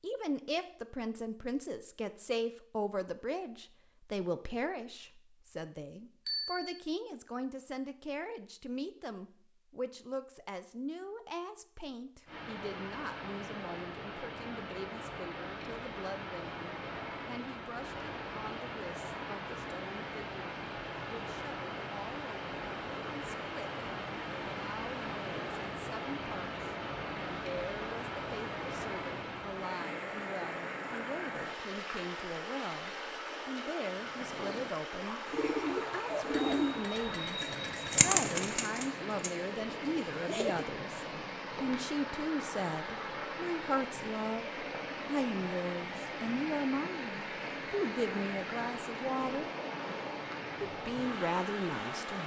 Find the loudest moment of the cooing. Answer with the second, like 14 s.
38 s.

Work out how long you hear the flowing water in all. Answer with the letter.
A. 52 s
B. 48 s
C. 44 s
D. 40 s
D.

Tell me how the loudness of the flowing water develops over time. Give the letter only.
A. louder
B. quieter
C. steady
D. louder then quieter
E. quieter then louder
C.